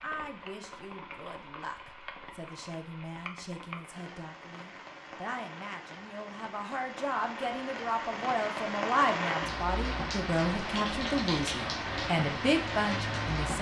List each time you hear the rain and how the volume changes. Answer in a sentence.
You can hear the rain from 0.0 to 13.5 s, getting louder.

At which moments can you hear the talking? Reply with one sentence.
The talking can be heard from 0.0 to 13.5 s.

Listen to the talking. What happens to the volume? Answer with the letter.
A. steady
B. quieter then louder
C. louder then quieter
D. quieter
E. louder
E.